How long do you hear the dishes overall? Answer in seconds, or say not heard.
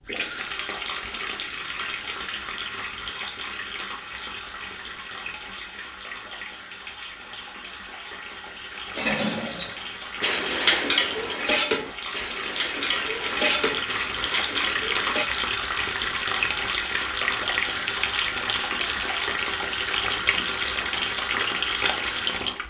6 s.